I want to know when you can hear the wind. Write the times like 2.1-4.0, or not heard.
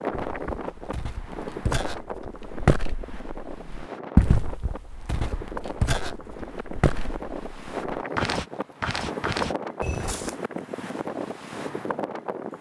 0.0-12.5.